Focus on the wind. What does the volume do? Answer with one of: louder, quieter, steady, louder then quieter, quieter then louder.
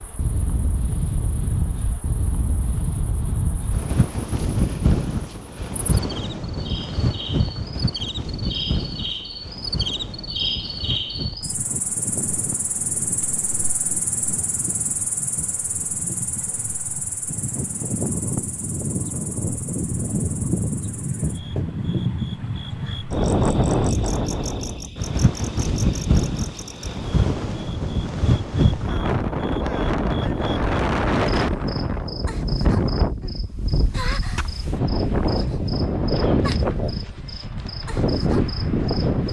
quieter then louder.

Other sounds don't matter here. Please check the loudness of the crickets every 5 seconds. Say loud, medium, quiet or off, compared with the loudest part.
quiet, loud, loud, medium, medium, medium, medium, medium.